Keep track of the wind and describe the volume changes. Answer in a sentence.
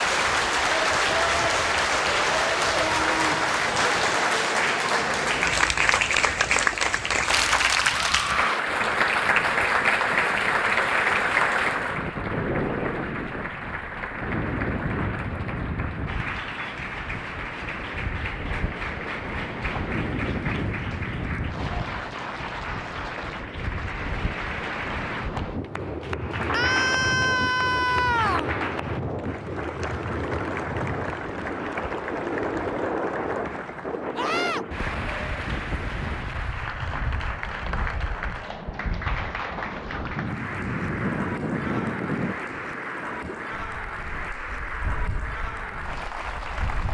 The loudness of the wind goes up.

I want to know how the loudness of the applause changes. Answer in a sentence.
The loudness of the applause goes down.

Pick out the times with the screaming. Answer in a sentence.
You can hear the screaming from 7.8 to 8.6 s, from 26.5 to 28.5 s and from 34.1 to 34.6 s.